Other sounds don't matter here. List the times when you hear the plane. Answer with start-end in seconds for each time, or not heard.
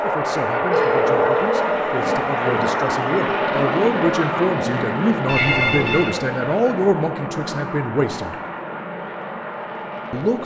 0.0-10.4.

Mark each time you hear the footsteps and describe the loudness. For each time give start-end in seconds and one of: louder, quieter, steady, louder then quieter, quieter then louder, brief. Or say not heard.
not heard.